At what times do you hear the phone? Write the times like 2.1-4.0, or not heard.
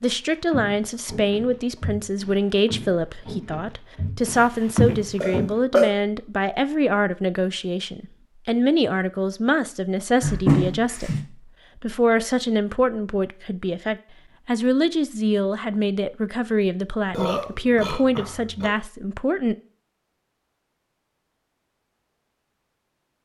not heard.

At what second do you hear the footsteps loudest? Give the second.
5 s.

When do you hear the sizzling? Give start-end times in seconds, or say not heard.
not heard.